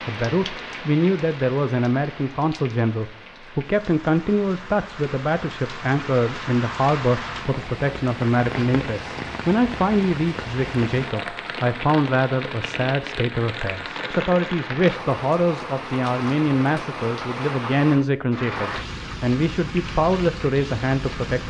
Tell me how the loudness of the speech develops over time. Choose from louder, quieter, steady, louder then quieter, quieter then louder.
steady.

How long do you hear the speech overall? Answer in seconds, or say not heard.
21 s.